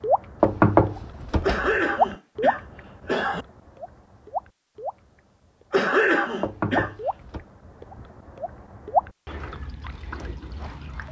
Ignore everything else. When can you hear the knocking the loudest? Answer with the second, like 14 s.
1 s.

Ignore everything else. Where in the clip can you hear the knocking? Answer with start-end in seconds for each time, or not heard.
0.4-1.8, 6.4-7.5.